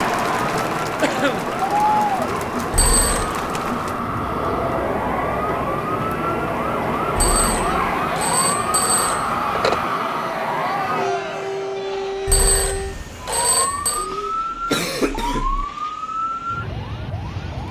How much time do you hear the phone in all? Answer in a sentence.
The phone can be heard for 5 seconds in total.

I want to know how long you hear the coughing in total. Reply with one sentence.
You can hear the coughing for 2 seconds altogether.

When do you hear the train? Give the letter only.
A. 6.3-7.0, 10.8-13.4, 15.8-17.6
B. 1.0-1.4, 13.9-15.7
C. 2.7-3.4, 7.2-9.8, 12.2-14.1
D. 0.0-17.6
D.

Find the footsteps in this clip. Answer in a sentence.
You can't hear the footsteps here.